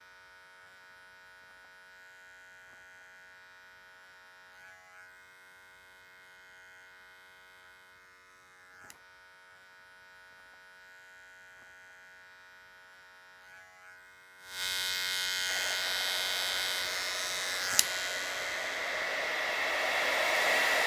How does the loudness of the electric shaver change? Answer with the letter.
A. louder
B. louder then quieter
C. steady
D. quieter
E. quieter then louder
A.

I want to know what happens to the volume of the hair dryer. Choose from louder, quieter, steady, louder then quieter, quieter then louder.
louder.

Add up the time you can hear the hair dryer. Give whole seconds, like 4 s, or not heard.
5 s.